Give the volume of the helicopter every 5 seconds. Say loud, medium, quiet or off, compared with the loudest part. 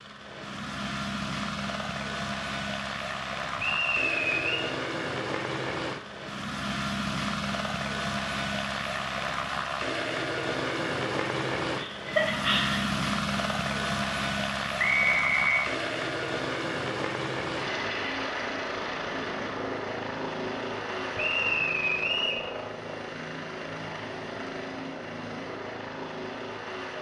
loud, loud, loud, loud, medium, medium.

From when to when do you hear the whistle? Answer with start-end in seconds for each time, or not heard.
3.5-4.7, 14.8-15.7, 21.1-22.4.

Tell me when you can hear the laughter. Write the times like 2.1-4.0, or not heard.
11.8-12.9.